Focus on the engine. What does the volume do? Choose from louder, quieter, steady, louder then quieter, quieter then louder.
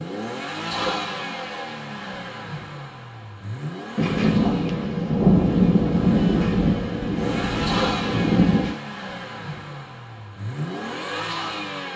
quieter then louder.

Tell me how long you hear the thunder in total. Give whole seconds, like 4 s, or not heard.
5 s.